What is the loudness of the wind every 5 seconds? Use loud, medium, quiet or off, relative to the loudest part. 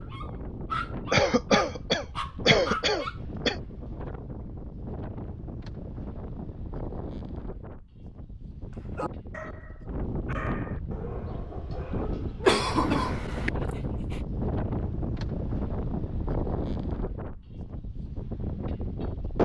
medium, medium, loud, loud.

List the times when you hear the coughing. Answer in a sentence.
You can hear the coughing from 1.1 to 3.5 s and from 12.4 to 13.5 s.